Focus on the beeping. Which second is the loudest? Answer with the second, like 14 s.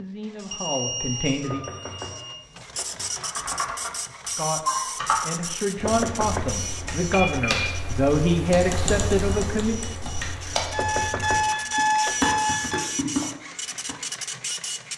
12 s.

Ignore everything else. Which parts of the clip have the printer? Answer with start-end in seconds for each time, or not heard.
0.0-14.9.